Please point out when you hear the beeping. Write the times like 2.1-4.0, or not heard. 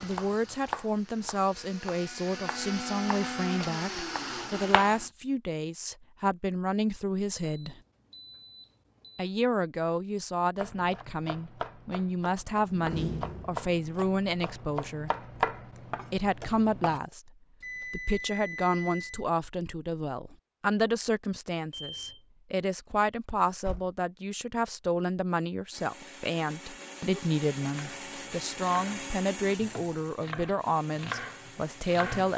7.6-9.3, 17.6-19.2, 21.7-22.2.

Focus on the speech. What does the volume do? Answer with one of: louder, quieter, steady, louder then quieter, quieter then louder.
steady.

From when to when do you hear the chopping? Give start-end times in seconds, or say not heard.
0.0-5.0, 10.6-17.0, 27.1-32.3.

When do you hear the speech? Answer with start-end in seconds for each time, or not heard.
0.0-7.8, 9.2-15.1, 16.1-32.3.